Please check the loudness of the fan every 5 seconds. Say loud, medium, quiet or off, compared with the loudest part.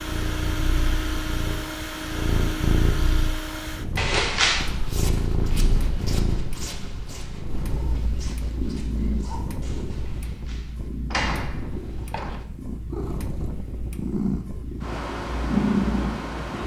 loud, medium, medium, loud.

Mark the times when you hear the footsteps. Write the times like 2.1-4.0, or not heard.
4.5-10.2.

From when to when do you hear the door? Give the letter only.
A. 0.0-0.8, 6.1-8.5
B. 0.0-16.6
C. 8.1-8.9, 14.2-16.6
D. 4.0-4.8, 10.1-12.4
D.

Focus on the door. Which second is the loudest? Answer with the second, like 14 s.
4 s.